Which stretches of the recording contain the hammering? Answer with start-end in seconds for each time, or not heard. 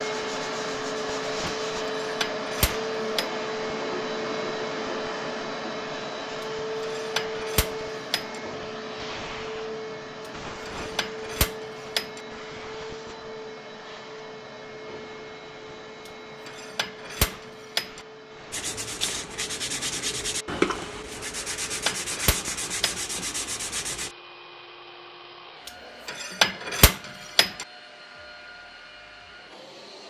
2.0-3.2, 7.0-8.4, 10.7-12.2, 16.4-18.0, 21.6-22.9, 26.1-27.6.